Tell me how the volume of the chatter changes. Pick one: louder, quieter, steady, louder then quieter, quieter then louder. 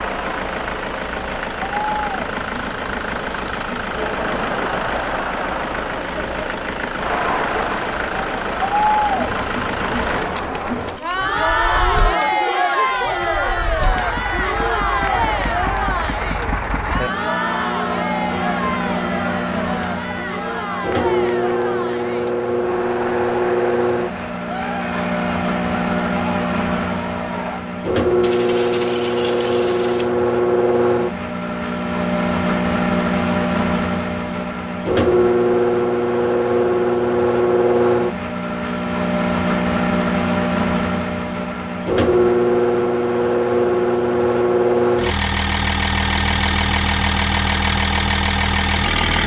louder then quieter.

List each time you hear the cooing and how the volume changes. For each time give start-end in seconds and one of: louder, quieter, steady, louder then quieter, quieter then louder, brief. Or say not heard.
not heard.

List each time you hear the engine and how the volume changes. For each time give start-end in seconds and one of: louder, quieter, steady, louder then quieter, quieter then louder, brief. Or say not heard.
0.0-49.2 louder.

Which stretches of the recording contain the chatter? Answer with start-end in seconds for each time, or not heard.
0.0-27.6.